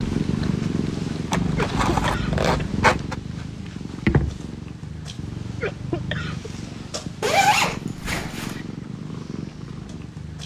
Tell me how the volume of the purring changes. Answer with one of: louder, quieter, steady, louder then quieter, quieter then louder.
quieter.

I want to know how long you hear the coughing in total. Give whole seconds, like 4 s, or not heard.
2 s.